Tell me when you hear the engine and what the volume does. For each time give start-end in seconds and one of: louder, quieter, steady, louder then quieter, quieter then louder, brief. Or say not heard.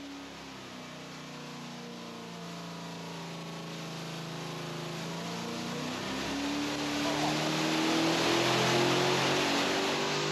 0.0-10.2 louder.